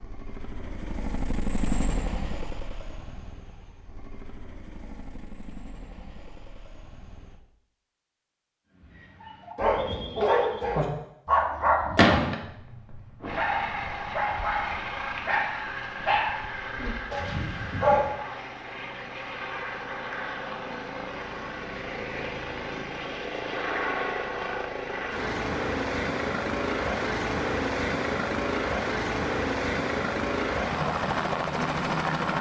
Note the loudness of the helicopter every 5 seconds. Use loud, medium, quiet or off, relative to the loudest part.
medium, quiet, medium, medium, medium, loud, loud.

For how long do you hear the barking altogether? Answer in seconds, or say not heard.
9 s.